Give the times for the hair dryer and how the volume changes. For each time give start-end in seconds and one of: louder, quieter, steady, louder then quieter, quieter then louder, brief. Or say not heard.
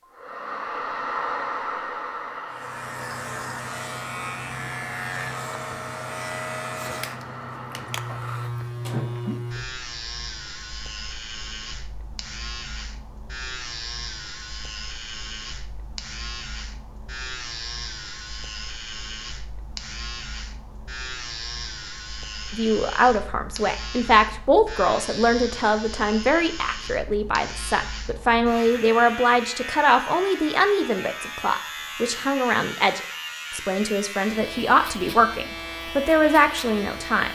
0.0-8.5 quieter.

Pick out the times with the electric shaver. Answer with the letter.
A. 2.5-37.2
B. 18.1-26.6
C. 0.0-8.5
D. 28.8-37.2
A.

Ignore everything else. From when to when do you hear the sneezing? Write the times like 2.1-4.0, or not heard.
not heard.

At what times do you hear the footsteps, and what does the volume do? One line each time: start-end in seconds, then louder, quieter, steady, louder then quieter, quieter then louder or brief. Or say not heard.
not heard.